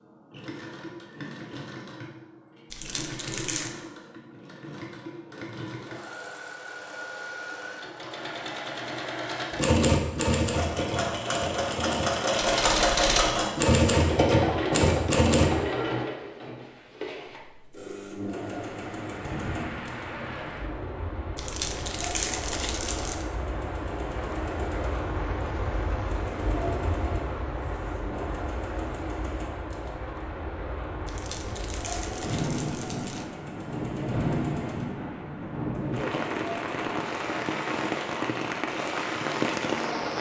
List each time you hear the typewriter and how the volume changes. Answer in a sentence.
The typewriter can be heard from 9.5 to 15.5 s, getting quieter then louder.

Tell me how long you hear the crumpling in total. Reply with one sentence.
The crumpling can be heard for 5 seconds in total.